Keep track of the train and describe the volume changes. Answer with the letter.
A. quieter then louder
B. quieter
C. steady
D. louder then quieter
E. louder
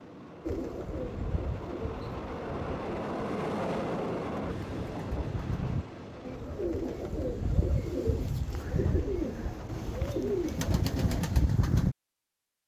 D.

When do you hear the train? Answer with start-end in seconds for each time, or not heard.
0.0-10.7.